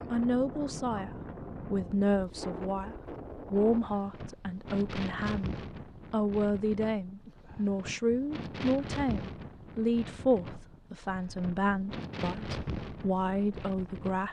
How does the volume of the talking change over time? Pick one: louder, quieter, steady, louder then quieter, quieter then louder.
steady.